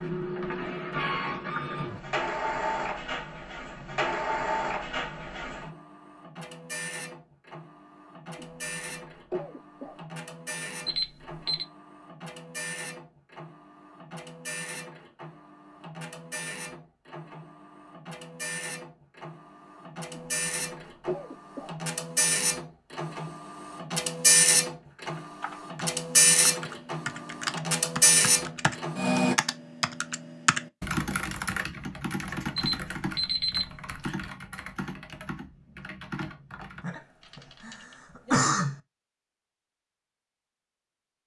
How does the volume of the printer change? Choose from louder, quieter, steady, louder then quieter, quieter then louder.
quieter then louder.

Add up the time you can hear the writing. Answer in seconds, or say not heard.
not heard.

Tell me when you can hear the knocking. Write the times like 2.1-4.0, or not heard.
not heard.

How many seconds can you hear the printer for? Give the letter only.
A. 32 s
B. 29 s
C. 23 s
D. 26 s
B.